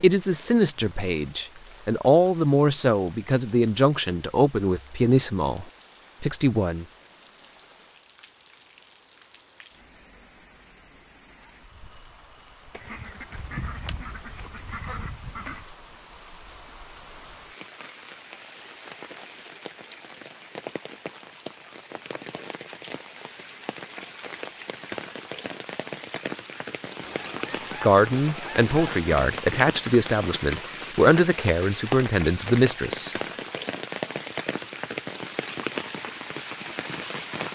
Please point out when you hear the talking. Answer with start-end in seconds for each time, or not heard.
0.0-6.8, 27.4-33.1.